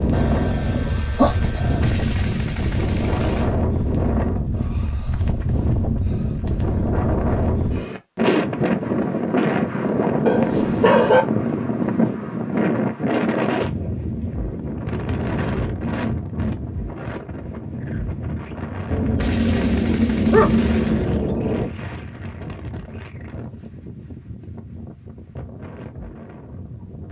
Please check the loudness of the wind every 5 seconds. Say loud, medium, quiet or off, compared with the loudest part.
loud, loud, loud, medium, quiet, quiet.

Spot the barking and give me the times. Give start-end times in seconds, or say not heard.
0.1-1.9, 10.2-11.2, 18.9-21.7.